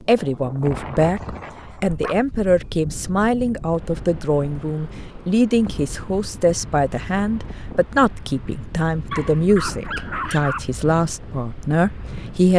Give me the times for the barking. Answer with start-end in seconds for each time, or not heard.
1.2-2.7, 9.1-10.7.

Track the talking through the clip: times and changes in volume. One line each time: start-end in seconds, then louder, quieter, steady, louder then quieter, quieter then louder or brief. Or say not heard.
0.1-12.5 steady.